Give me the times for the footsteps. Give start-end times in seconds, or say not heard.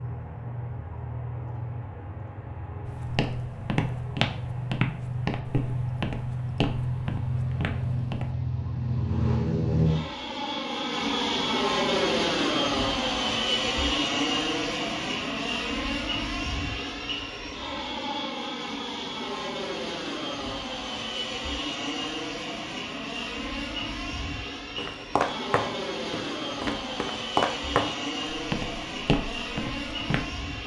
2.9-8.3, 24.8-30.2.